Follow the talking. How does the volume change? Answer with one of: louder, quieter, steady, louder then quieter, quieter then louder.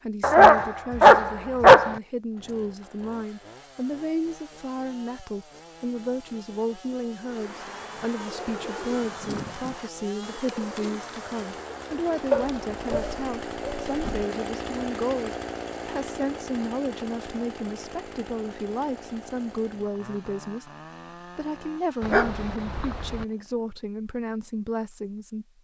steady.